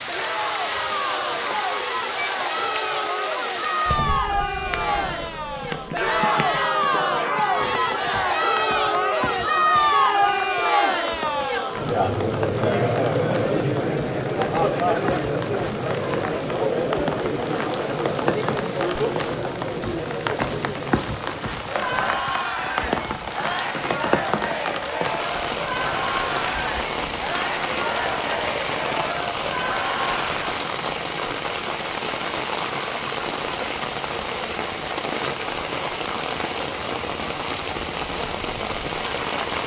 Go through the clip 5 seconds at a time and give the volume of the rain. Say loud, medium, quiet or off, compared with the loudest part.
loud, medium, medium, loud, loud, loud, loud, loud.